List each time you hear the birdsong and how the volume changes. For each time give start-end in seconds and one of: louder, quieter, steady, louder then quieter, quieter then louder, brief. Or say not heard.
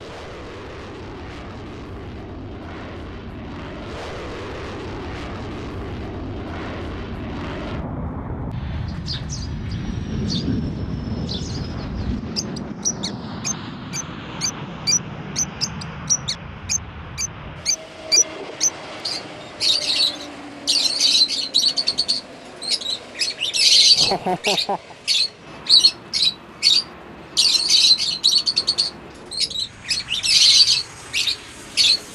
8.7-32.0 louder.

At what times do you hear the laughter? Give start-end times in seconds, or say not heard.
23.9-24.9.